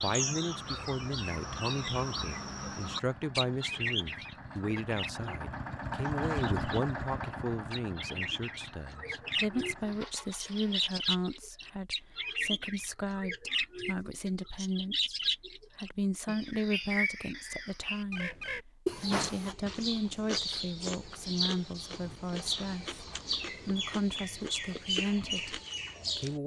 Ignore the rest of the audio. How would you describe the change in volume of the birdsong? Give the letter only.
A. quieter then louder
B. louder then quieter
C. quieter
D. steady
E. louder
D.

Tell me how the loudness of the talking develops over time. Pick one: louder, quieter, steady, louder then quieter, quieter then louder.
steady.